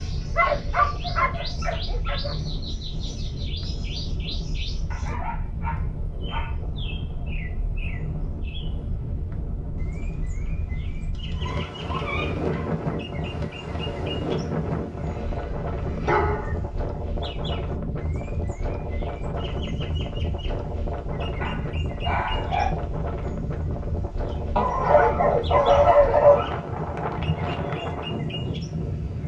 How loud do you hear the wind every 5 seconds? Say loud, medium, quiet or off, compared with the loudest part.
medium, medium, loud, loud, loud, loud.